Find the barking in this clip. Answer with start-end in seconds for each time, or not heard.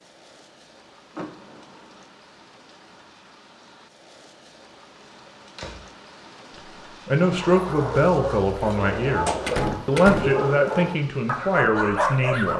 7.2-12.5.